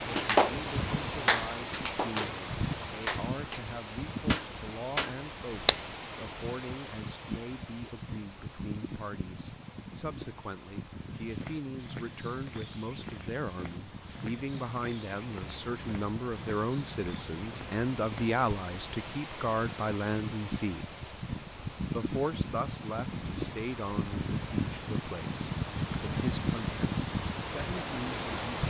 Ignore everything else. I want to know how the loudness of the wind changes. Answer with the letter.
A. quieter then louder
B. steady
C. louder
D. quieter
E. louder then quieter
A.